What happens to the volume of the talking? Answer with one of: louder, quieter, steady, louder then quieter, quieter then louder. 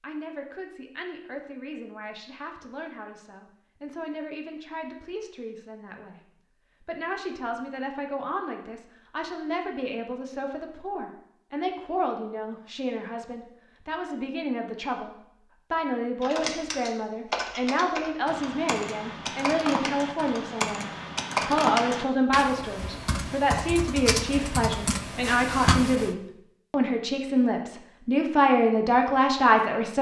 louder.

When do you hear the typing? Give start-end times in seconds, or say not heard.
16.2-26.1.